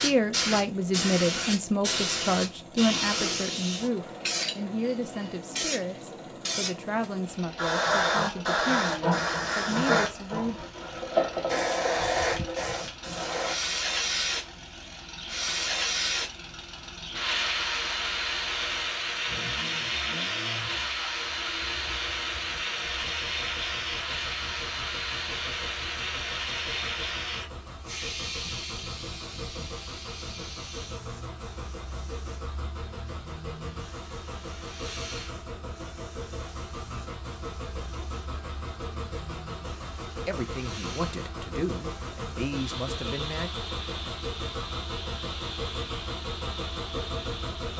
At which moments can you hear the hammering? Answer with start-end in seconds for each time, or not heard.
not heard.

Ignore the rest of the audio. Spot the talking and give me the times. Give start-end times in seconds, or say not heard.
0.0-10.7, 40.1-43.5.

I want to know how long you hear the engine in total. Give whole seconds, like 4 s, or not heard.
48 s.